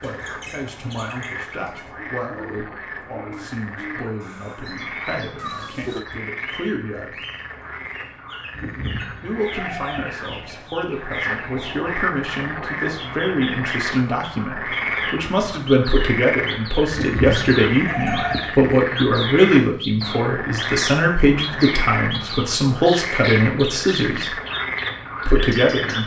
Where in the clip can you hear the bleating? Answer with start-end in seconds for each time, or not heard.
8.5-10.4, 16.9-18.8.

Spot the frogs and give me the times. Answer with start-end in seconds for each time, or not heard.
0.0-26.0.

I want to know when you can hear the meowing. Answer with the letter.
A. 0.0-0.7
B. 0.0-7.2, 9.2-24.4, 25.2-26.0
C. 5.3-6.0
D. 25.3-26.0
C.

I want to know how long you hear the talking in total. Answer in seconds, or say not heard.
23 s.